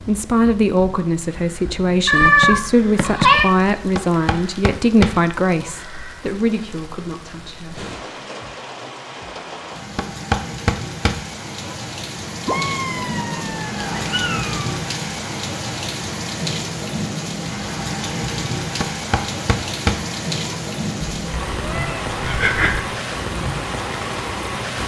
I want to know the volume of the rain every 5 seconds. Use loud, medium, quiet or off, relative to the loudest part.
quiet, medium, loud, loud, loud.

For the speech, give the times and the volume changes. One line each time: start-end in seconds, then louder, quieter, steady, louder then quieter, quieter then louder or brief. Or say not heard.
0.0-7.9 quieter.